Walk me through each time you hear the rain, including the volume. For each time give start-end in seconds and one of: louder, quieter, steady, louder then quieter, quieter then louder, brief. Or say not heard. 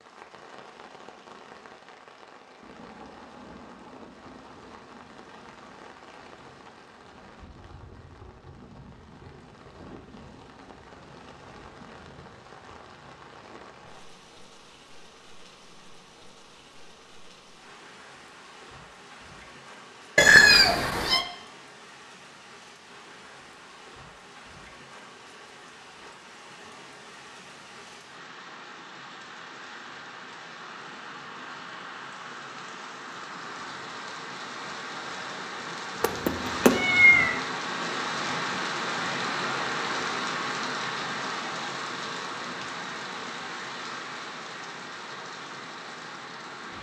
0.0-46.7 louder.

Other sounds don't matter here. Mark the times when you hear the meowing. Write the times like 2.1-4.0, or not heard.
20.1-21.2, 36.0-37.4.